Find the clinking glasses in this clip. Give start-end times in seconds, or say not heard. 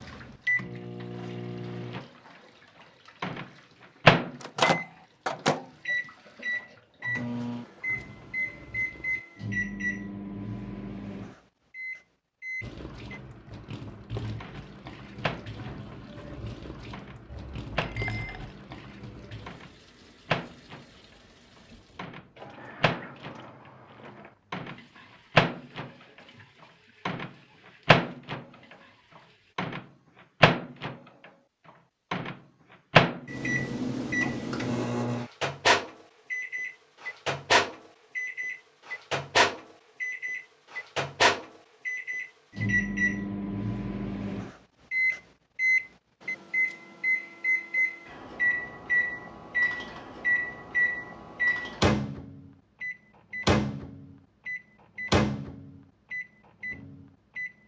17.2-18.6.